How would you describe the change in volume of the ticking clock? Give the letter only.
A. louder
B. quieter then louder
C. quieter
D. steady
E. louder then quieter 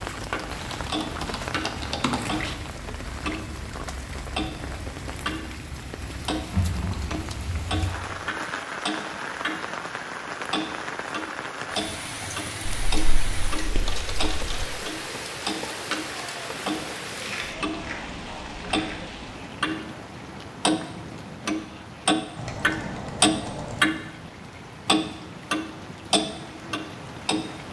A.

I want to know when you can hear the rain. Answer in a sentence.
You can hear the rain from 0.0 to 27.6 s.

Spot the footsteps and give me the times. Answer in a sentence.
The footsteps can't be heard in this clip.